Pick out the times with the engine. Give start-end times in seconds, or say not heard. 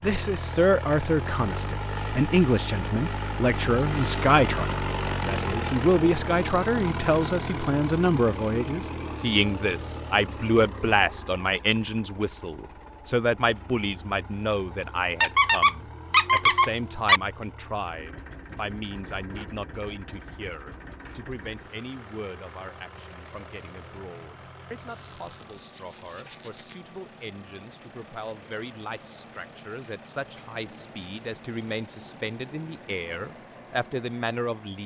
0.0-34.8.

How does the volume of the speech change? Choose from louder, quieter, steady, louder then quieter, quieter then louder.
quieter then louder.